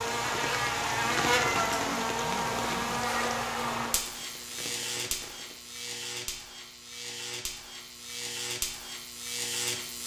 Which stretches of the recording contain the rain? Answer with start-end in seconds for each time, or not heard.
0.0-5.7.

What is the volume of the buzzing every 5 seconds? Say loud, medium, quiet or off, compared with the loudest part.
loud, medium.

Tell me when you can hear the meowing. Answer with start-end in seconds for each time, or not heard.
1.1-2.0.